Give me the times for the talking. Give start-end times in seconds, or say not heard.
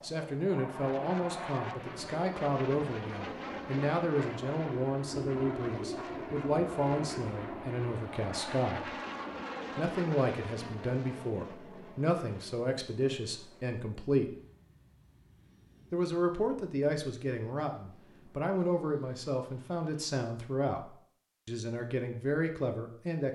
0.0-8.9, 9.8-14.3, 15.9-23.2.